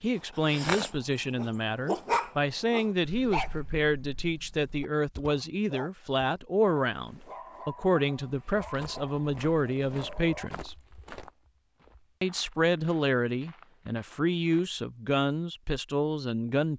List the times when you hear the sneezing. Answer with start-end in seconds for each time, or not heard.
not heard.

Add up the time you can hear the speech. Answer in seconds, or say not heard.
15 s.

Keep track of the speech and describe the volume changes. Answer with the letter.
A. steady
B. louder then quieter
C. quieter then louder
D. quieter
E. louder
A.